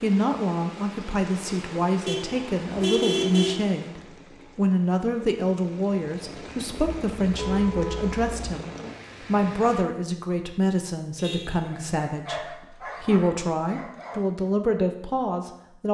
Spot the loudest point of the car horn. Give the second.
3 s.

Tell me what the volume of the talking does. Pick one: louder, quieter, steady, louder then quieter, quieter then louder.
steady.